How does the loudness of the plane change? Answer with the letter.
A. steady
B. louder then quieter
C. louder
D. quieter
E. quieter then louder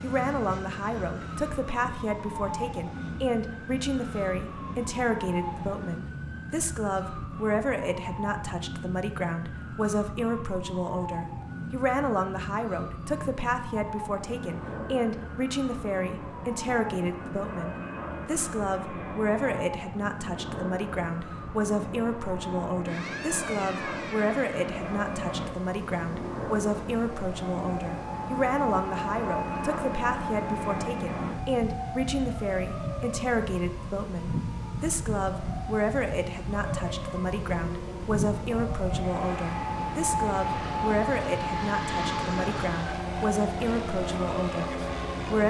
C.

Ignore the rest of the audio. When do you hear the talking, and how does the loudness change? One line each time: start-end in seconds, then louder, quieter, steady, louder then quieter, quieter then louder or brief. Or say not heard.
0.0-45.4 steady.